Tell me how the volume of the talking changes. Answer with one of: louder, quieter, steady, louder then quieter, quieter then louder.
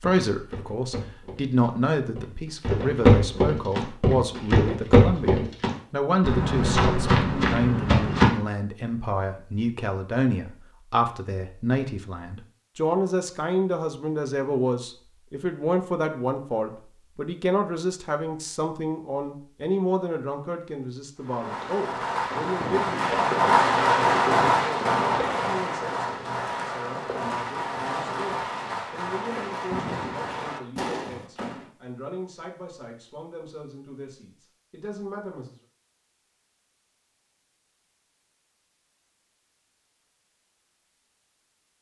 quieter.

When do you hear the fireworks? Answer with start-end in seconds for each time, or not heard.
21.2-31.7.